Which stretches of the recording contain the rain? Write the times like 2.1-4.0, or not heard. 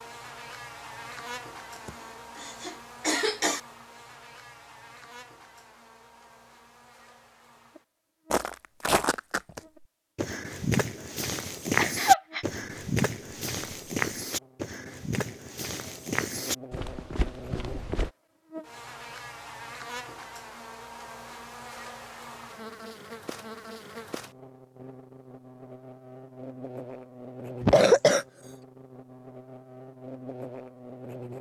not heard.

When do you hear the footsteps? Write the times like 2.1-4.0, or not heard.
8.3-18.1.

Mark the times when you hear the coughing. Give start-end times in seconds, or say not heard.
1.9-3.6, 11.8-12.4, 27.6-28.2.